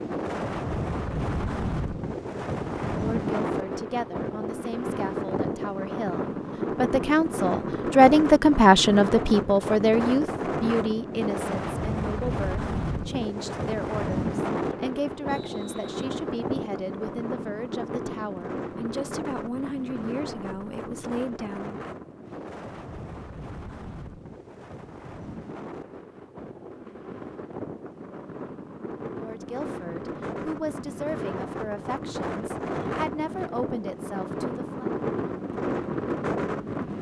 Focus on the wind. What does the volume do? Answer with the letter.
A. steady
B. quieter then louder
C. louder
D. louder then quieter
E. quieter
B.